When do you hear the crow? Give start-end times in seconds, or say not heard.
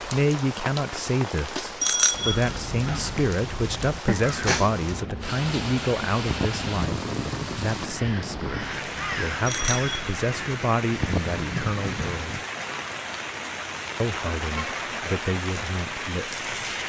2.1-12.4.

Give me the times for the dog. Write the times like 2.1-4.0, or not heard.
not heard.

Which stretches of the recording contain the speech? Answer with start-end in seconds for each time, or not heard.
0.0-12.4, 14.0-16.4.